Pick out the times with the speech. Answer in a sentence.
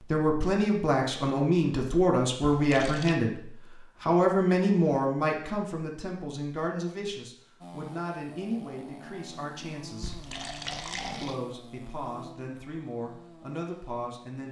The speech can be heard from 0.0 to 10.2 s and from 11.1 to 14.4 s.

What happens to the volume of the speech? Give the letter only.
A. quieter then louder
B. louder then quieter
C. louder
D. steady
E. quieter
E.